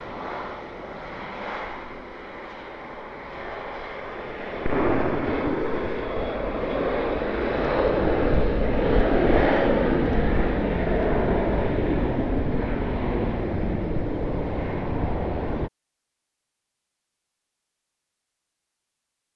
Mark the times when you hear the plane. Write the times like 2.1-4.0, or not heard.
0.0-15.7.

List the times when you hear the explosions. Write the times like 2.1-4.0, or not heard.
4.7-6.0.